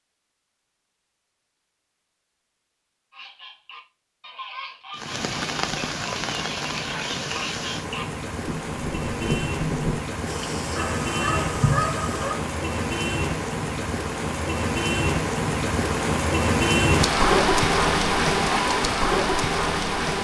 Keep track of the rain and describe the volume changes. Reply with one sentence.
The volume of the rain goes up.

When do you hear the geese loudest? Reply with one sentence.
The volume of the geese peaks at 12 seconds.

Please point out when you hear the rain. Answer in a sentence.
The rain can be heard from 4.9 to 20.1 s.